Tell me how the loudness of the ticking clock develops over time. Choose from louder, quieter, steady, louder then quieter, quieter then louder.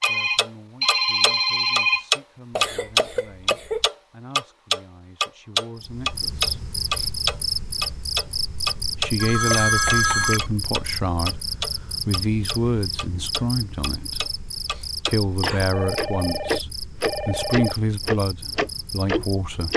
quieter then louder.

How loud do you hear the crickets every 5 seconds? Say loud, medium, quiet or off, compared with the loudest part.
off, loud, loud, medium.